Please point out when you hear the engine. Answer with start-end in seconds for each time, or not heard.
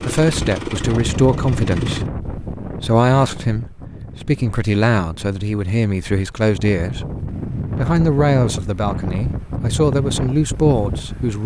0.0-2.1.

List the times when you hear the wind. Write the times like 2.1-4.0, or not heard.
0.2-11.4.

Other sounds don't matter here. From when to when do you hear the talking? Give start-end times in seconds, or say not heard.
0.0-7.0, 7.8-11.4.